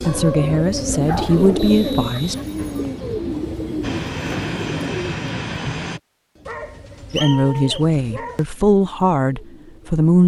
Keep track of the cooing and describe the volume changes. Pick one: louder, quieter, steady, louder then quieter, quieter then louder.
quieter.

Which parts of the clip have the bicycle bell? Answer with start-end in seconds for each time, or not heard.
not heard.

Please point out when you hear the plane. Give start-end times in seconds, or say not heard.
3.8-6.0.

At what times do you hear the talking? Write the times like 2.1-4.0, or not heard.
0.1-2.4, 7.1-10.2.